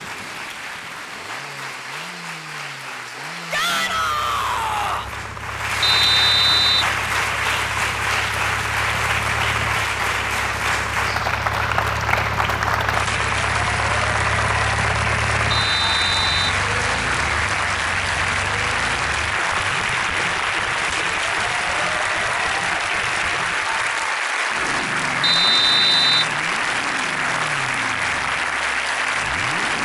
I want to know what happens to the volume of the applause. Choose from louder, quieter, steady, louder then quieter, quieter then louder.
louder.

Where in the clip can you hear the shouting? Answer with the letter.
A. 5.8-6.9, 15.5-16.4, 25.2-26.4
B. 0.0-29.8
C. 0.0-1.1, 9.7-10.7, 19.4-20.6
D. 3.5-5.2
D.